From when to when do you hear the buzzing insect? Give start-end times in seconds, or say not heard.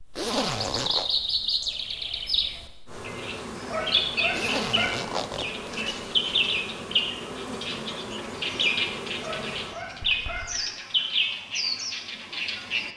2.9-9.8.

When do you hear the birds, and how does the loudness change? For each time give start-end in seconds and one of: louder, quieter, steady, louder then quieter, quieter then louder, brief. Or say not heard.
0.0-12.9 steady.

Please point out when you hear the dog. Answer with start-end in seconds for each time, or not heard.
3.6-5.0, 9.2-10.4.